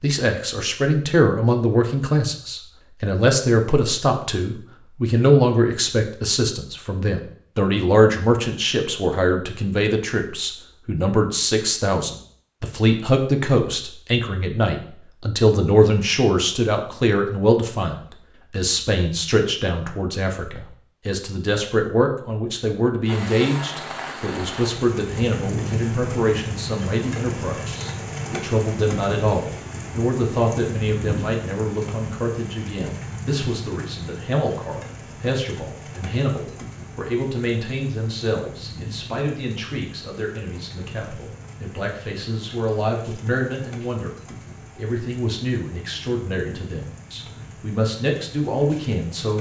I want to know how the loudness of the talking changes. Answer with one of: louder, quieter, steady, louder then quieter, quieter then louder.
quieter.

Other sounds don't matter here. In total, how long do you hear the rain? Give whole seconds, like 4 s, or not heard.
26 s.